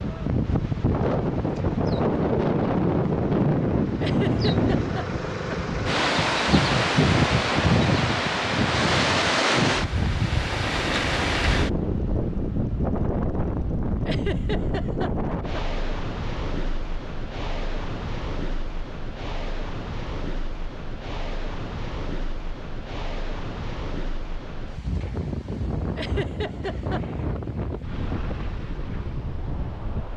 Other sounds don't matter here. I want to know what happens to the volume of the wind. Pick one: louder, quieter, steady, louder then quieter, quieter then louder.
quieter.